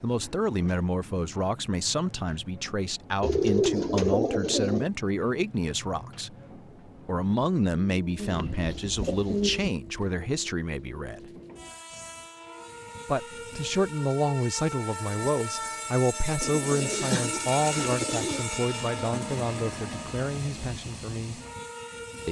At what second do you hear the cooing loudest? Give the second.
4 s.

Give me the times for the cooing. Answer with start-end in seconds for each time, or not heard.
3.2-4.8, 8.2-9.7, 16.4-18.4.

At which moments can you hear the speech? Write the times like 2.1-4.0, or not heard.
0.0-6.3, 7.0-11.3, 13.1-21.4.